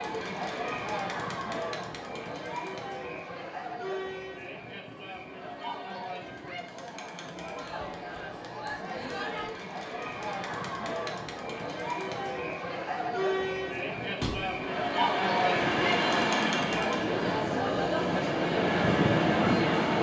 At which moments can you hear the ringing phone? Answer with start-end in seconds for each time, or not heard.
not heard.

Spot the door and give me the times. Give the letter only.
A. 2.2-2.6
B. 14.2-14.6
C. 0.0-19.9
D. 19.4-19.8
B.